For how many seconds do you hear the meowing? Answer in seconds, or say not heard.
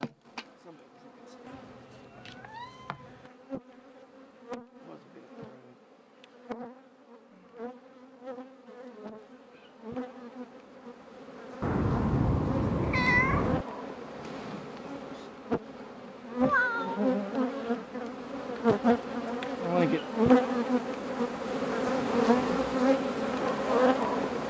5 s.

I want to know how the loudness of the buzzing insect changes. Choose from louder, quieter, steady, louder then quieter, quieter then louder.
louder.